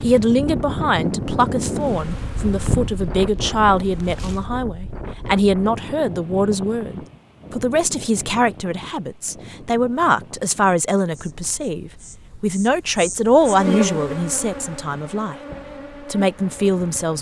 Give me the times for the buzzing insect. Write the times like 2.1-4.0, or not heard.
1.6-4.5, 11.1-17.1.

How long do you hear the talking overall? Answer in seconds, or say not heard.
16 s.